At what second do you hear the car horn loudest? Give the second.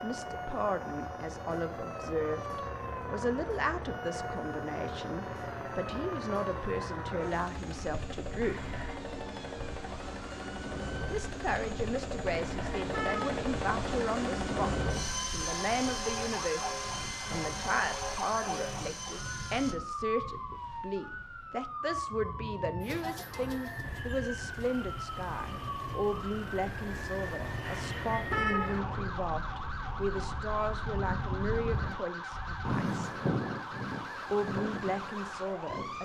28 s.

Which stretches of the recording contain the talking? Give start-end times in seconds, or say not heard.
0.0-8.6, 11.1-14.7, 15.3-33.1, 34.3-36.0.